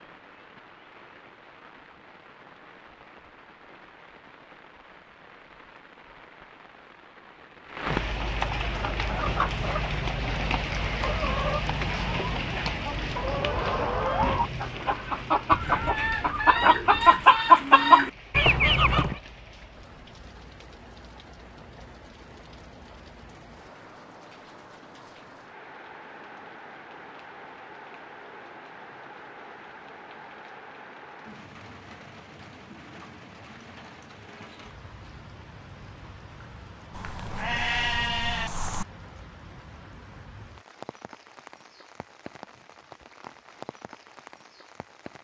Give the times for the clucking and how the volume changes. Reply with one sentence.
You can hear the clucking from 8.7 to 19.1 s, getting louder.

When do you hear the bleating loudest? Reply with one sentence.
The volume of the bleating peaks at 38 seconds.